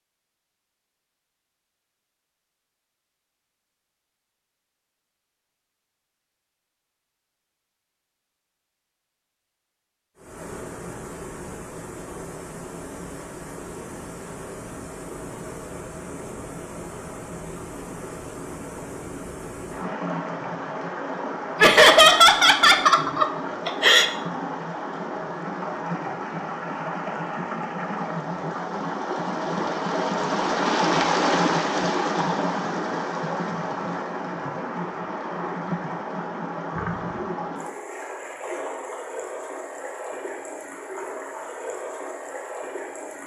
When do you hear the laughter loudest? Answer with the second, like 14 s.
22 s.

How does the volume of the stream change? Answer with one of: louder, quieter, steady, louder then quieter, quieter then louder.
louder then quieter.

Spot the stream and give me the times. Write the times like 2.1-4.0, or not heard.
10.2-43.2.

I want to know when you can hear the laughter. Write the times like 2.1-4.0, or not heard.
21.6-24.1.